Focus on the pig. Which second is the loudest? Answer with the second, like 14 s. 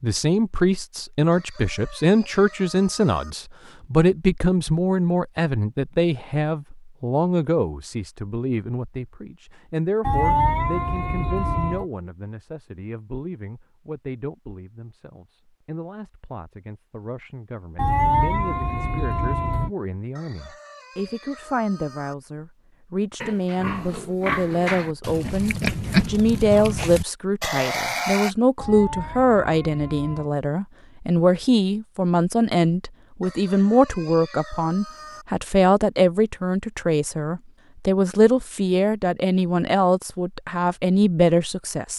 26 s.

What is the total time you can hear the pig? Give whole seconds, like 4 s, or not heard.
5 s.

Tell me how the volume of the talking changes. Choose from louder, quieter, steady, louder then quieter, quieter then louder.
quieter then louder.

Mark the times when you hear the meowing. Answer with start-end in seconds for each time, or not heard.
10.0-11.8, 17.8-19.7, 28.6-30.3.